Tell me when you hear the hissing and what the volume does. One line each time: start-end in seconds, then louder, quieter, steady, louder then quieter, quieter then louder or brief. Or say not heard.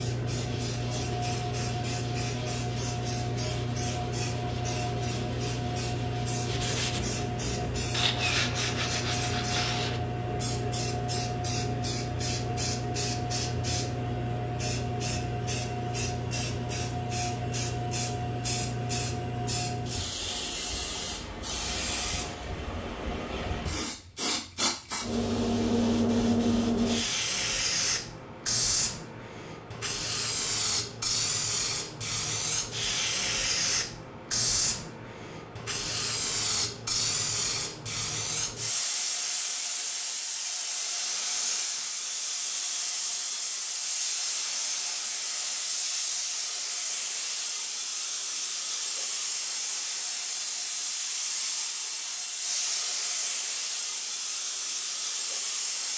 0.0-55.9 steady.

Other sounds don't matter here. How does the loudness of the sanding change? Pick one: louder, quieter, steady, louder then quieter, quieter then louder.
louder.